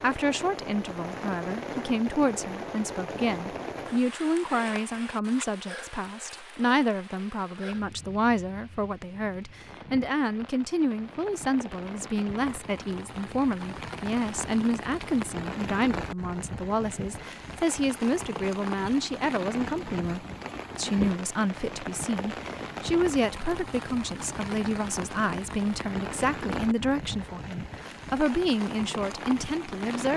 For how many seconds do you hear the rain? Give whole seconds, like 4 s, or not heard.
30 s.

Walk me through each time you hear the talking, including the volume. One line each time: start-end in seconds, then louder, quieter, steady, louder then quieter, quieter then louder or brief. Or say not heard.
0.0-30.1 steady.